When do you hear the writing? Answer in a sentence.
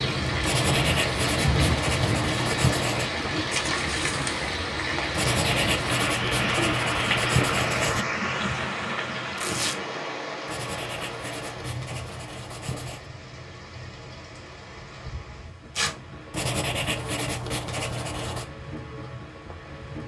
The writing can be heard from 0.4 to 3.1 s, from 5.2 to 8.1 s, from 10.4 to 13.1 s and from 16.3 to 18.4 s.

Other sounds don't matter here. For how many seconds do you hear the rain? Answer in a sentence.
The rain can be heard for 20 seconds in total.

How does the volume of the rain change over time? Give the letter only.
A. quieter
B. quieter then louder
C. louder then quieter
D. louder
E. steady
A.